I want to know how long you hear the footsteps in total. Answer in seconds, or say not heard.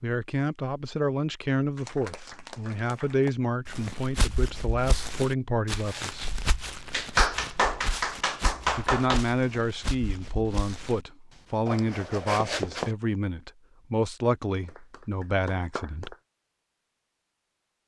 9 s.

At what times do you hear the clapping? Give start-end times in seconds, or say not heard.
1.8-3.3, 6.9-9.2, 14.7-16.1.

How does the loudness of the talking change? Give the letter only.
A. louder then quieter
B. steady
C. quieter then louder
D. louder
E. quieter
B.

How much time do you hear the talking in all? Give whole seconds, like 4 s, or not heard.
14 s.